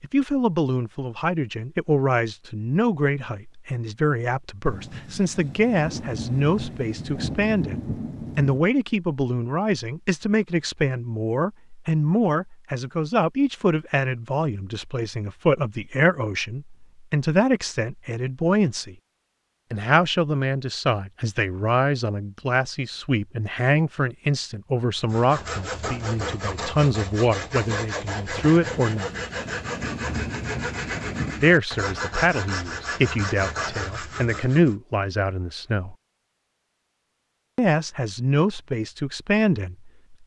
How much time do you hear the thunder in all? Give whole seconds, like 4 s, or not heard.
7 s.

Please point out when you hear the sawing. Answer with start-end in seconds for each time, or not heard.
24.9-34.8.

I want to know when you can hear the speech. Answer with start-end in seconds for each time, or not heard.
0.0-18.9, 19.7-29.1, 31.4-36.0, 37.5-40.2.